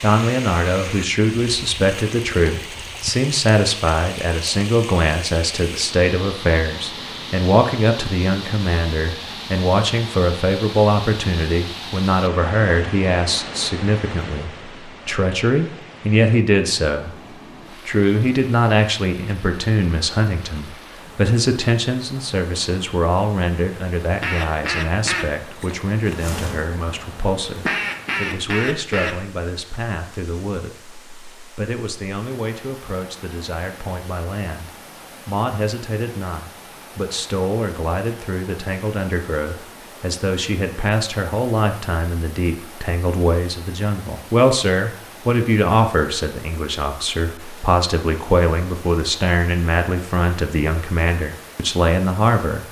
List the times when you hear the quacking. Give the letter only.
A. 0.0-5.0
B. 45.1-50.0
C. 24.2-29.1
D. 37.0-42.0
C.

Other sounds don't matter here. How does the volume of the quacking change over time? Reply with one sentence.
The loudness of the quacking goes down, then up.